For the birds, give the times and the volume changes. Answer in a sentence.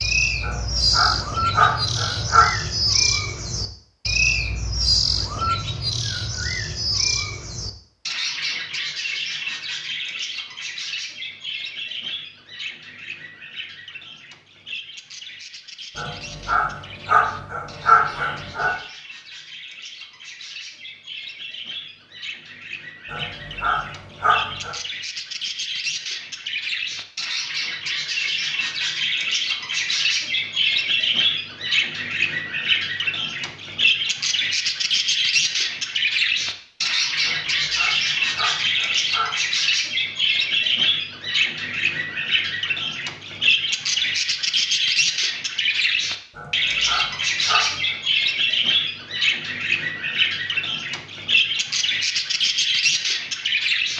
The birds can be heard from 0.0 to 53.9 s, getting quieter then louder.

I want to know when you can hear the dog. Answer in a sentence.
The dog can be heard from 0.4 to 2.5 s, from 15.9 to 18.8 s, from 23.1 to 24.8 s, from 37.2 to 39.5 s and from 46.4 to 48.0 s.